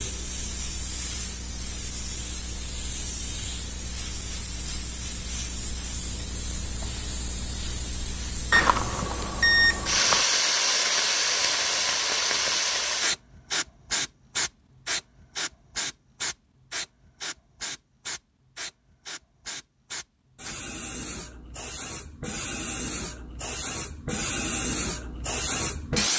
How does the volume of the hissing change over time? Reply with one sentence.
The loudness of the hissing goes up, then down.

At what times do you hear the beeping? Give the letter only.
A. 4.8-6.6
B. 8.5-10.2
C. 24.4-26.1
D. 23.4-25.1
B.